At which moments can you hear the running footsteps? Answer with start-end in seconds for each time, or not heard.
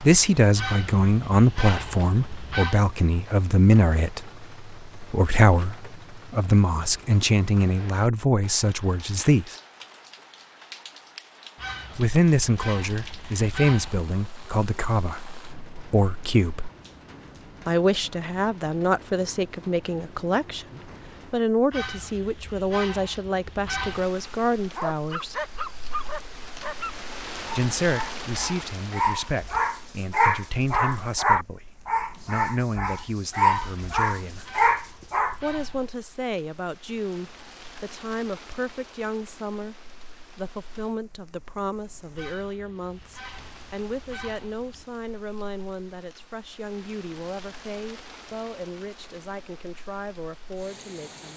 not heard.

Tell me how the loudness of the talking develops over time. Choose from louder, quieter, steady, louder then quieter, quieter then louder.
quieter.